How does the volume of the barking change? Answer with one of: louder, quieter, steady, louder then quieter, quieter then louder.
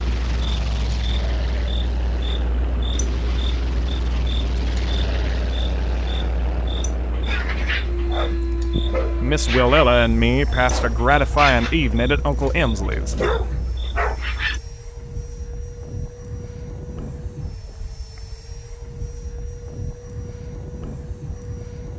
steady.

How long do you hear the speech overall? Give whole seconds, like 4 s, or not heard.
4 s.